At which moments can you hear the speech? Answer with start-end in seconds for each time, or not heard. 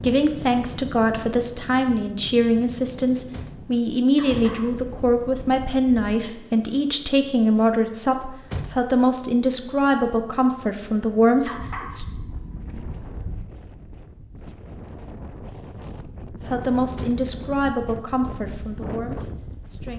0.0-12.1, 16.4-19.9.